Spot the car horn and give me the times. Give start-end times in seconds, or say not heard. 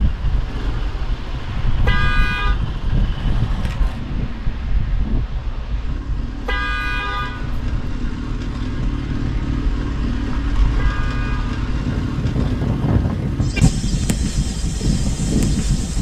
1.8-2.5, 6.5-7.7, 10.8-11.6.